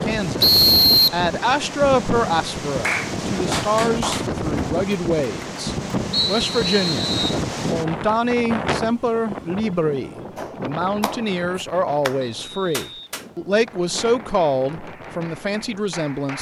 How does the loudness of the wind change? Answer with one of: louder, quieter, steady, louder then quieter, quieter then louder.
quieter.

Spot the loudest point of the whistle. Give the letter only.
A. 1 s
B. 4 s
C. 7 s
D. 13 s
A.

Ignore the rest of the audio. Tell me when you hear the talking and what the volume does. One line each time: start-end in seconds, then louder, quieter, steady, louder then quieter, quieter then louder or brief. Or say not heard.
0.0-16.3 steady.